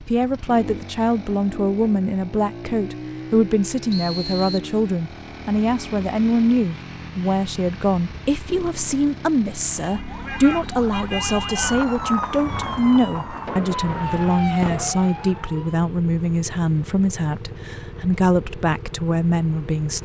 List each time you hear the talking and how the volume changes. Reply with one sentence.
The talking can be heard from 0.0 to 20.0 s, at a steady volume.